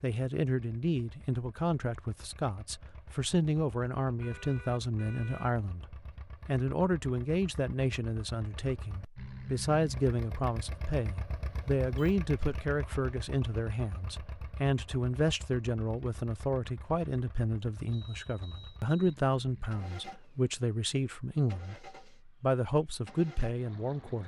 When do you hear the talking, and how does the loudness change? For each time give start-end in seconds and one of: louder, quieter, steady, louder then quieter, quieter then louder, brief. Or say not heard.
0.0-24.2 steady.